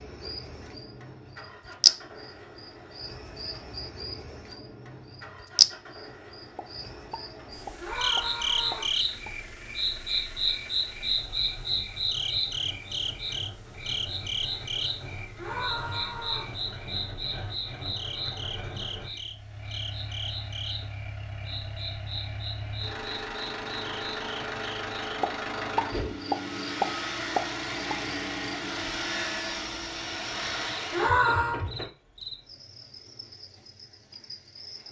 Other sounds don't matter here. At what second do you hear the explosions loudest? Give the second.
27 s.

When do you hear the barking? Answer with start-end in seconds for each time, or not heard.
not heard.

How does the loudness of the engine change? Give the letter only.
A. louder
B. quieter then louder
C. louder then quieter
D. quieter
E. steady
A.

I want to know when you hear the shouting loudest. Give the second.
31 s.